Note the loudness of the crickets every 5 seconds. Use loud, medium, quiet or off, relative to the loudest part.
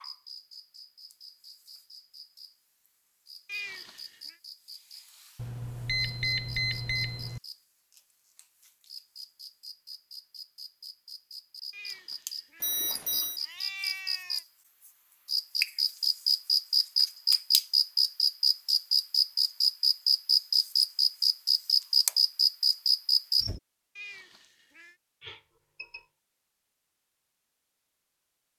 quiet, quiet, quiet, loud, loud, off.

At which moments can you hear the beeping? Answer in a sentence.
You can hear the beeping from 5.3 to 7.4 s, from 12.6 to 13.4 s and from 25.2 to 26.1 s.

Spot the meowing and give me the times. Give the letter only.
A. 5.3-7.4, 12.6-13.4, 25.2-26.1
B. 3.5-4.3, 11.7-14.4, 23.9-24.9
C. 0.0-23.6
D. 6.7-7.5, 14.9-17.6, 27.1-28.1
B.